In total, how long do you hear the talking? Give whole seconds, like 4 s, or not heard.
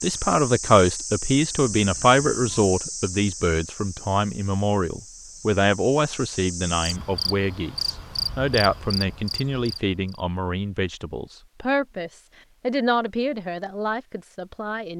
15 s.